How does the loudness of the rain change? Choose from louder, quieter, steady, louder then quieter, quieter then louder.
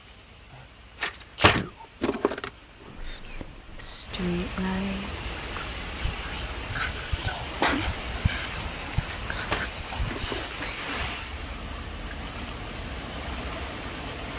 louder.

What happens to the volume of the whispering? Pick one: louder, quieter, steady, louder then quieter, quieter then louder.
quieter.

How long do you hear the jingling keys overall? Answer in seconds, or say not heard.
4 s.